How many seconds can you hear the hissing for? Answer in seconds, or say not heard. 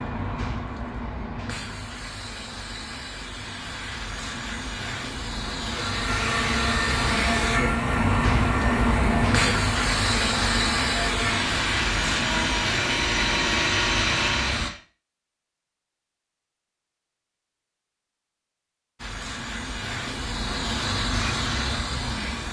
18 s.